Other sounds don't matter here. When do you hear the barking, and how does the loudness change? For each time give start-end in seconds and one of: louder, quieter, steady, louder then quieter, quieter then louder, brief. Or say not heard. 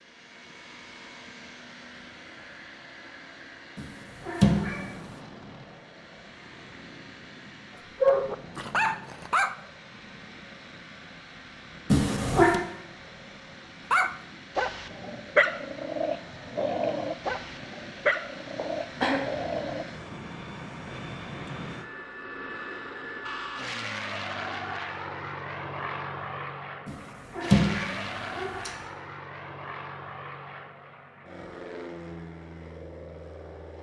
8.0-9.6 brief
13.9-19.9 louder then quieter.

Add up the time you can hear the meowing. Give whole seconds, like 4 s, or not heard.
4 s.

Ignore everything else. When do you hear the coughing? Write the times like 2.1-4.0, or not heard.
18.6-19.2.